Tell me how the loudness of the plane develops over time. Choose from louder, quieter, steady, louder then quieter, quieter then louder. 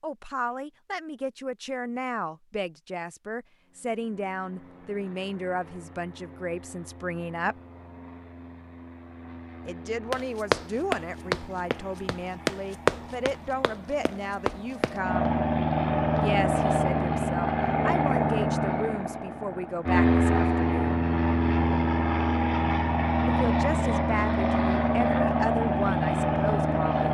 louder.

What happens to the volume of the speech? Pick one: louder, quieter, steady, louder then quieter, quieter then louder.
steady.